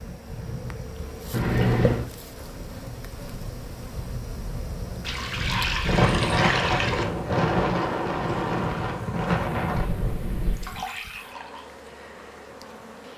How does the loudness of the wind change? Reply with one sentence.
The volume of the wind goes up.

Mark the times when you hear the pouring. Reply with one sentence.
You can hear the pouring from 1.3 to 2.0 s, from 5.0 to 7.0 s and from 10.6 to 11.7 s.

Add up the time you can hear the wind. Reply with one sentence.
The wind can be heard for 11 seconds in total.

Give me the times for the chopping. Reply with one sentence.
You can't hear the chopping here.